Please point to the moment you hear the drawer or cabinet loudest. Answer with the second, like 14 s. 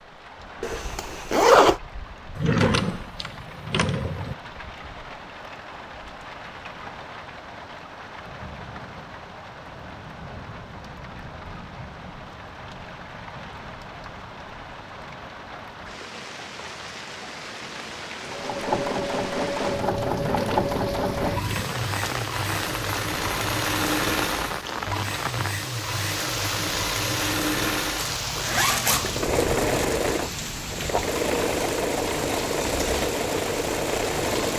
3 s.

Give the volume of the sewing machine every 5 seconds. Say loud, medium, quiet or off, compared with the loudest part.
off, off, off, loud, loud, loud, loud.